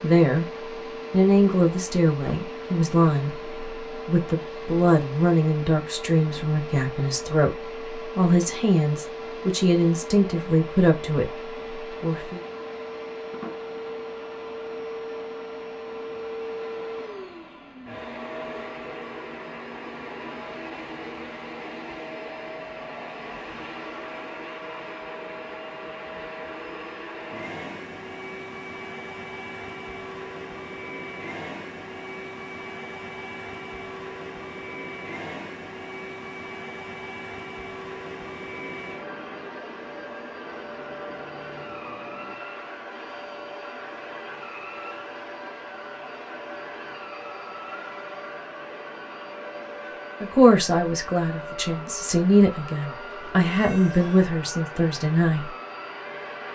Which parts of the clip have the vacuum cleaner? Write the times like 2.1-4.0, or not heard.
0.0-56.5.